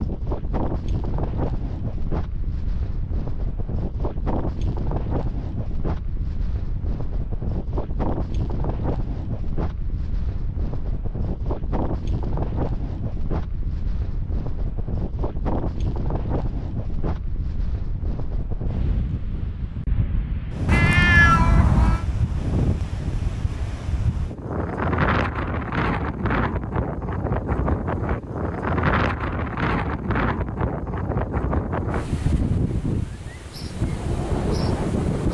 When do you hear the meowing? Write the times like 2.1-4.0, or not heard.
20.6-22.1.